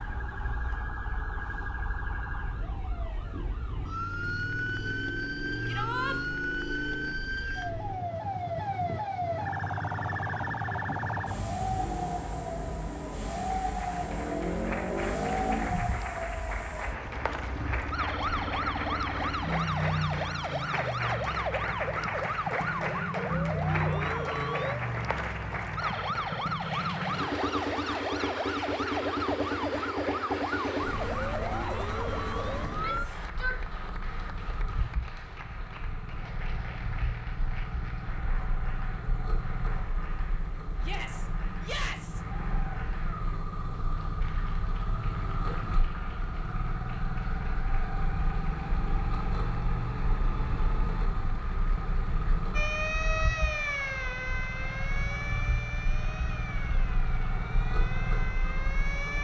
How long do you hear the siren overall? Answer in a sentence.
The siren can be heard for 40 seconds in total.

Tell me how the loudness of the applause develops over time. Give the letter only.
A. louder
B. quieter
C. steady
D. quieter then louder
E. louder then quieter
B.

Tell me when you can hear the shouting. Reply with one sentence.
The shouting can be heard from 5.7 to 6.2 s, from 32.6 to 33.6 s and from 40.8 to 42.2 s.